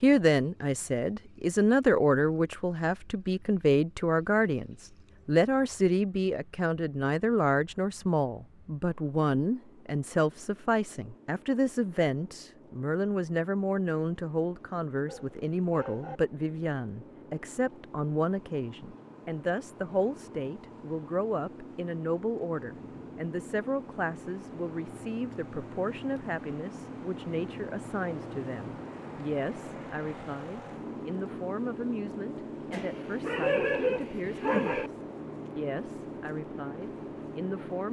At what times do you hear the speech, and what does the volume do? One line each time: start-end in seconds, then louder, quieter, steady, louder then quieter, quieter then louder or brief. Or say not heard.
0.0-37.8 quieter.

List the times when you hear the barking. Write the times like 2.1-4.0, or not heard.
15.1-16.2, 32.7-34.9.